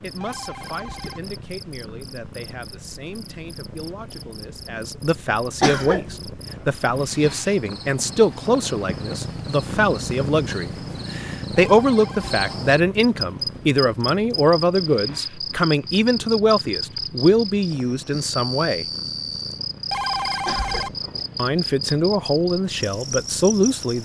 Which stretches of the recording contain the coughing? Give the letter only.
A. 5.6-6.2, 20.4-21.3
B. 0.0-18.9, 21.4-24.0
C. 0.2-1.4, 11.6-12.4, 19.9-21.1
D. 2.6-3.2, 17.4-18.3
A.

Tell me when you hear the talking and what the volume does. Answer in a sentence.
The talking can be heard from 0.0 to 18.9 s, getting louder; and briefly from 21.4 to 24.0 s.